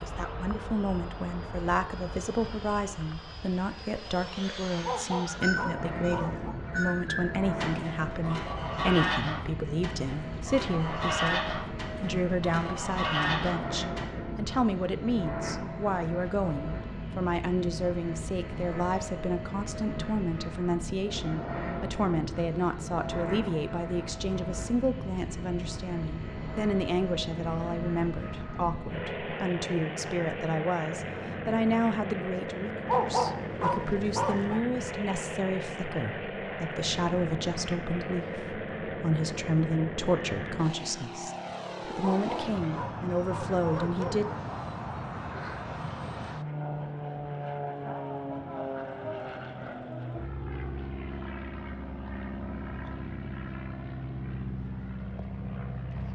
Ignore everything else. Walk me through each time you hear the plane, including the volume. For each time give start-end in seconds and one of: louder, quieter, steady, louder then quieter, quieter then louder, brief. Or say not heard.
0.0-56.1 steady.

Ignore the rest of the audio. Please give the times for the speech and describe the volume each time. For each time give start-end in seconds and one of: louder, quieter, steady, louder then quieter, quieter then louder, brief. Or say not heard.
0.0-44.2 steady.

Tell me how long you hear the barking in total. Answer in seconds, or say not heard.
6 s.